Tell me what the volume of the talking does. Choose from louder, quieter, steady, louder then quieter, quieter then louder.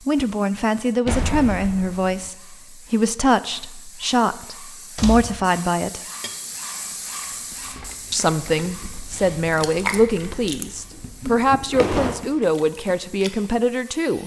steady.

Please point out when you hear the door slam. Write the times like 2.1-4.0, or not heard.
1.1-2.3, 5.0-5.5, 10.9-12.2.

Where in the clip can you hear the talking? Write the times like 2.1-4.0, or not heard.
0.1-6.0, 8.1-14.2.